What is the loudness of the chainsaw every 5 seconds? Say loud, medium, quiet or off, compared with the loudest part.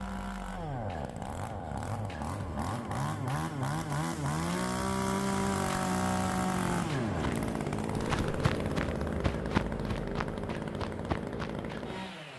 loud, loud, medium.